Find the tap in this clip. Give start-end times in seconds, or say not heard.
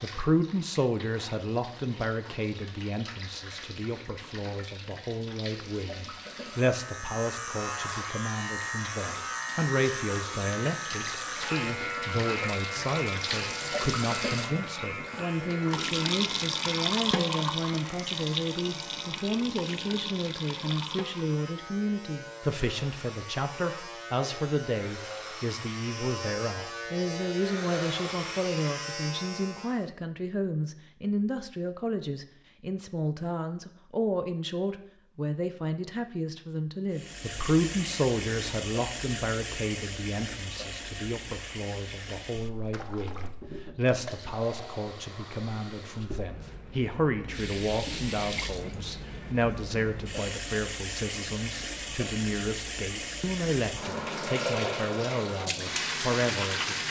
0.0-21.4, 36.9-56.8.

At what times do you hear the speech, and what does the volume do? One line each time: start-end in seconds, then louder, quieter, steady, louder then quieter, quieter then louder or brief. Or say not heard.
0.0-56.8 steady.